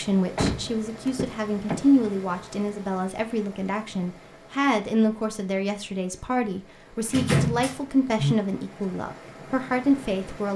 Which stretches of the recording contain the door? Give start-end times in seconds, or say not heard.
0.3-2.4, 7.0-8.3.